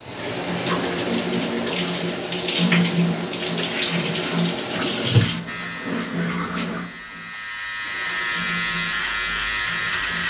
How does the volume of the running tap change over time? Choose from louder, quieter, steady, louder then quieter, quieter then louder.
quieter.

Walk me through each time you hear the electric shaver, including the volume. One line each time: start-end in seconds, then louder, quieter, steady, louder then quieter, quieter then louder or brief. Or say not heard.
5.5-10.2 louder.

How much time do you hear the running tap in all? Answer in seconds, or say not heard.
10 s.